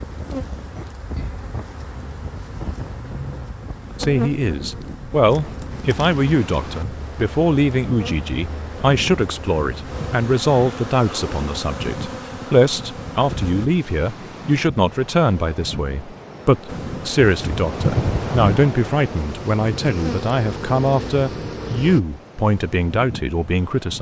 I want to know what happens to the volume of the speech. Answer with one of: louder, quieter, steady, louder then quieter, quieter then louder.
steady.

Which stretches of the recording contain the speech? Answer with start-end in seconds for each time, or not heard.
4.0-23.9.